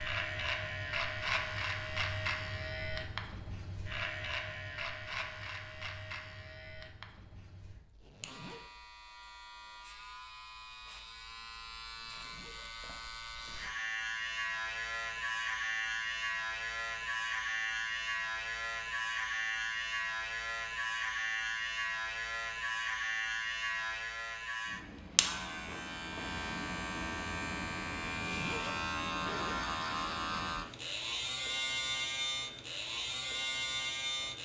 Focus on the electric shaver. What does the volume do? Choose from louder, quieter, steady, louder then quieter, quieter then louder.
quieter then louder.